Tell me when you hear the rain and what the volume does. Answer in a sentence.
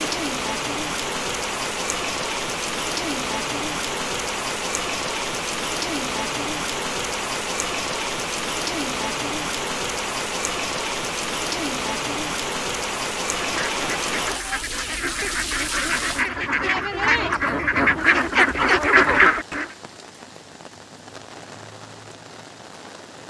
You can hear the rain from 0.0 to 23.2 s, getting quieter.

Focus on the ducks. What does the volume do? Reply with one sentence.
The loudness of the ducks goes up.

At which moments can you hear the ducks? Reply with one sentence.
You can hear the ducks from 13.4 to 19.6 s.